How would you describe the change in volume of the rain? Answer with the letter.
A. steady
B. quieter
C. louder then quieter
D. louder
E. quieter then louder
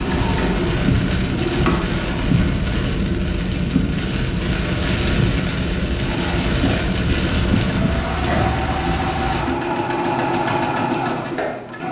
A.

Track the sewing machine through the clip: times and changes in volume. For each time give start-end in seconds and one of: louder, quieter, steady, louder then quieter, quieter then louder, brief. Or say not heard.
0.0-2.3 brief
6.0-11.8 louder.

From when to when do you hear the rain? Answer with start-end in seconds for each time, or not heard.
0.0-9.4.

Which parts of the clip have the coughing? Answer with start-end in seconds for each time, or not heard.
7.5-8.6.